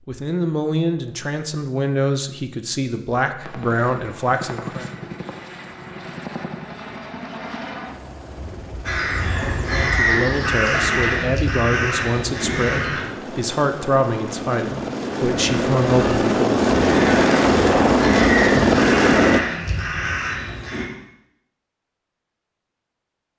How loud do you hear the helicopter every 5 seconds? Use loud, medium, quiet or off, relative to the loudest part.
quiet, quiet, quiet, loud, off.